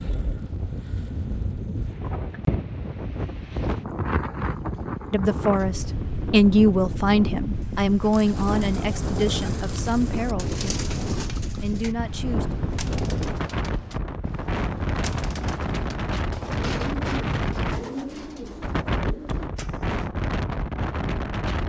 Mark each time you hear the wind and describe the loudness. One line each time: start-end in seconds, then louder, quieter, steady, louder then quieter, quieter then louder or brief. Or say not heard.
0.0-21.6 steady.